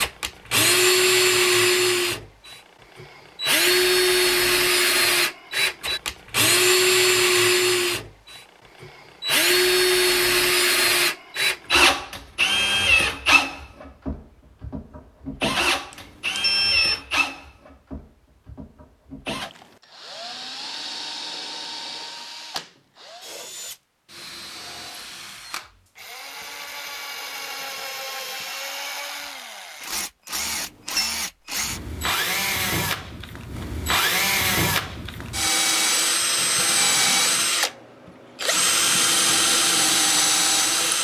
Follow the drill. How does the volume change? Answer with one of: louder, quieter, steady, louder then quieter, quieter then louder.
quieter then louder.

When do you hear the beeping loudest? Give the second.
17 s.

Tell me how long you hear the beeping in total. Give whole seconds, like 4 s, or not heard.
2 s.